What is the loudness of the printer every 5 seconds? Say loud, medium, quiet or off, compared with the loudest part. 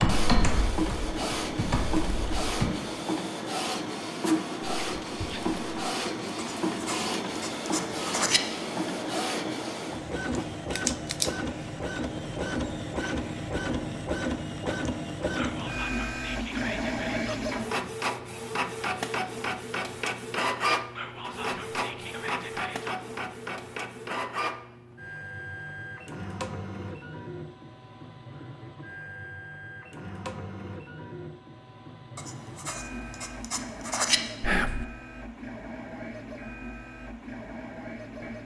loud, loud, loud, loud, loud, medium, medium, medium.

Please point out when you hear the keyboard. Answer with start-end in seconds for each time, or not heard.
0.0-2.7.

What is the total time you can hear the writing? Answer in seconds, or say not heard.
4 s.